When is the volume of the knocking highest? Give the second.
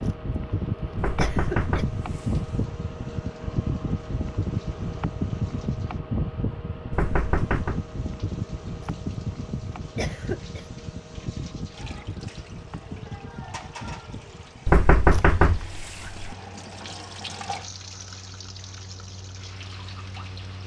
15 s.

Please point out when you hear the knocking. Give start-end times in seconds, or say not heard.
0.9-2.5, 6.9-7.8, 14.7-16.3.